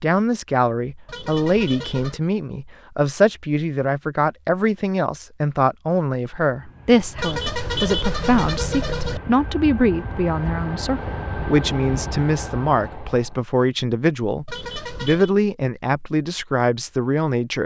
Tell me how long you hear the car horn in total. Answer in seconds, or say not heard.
4 s.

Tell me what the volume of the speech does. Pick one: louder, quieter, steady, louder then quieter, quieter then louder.
steady.